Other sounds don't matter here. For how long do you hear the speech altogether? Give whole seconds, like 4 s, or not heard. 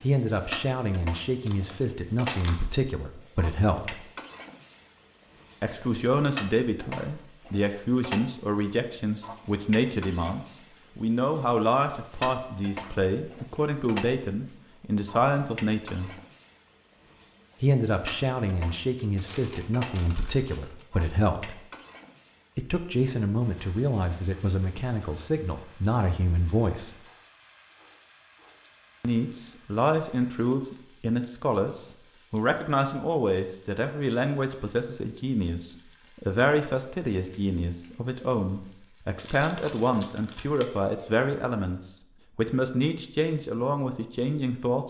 39 s.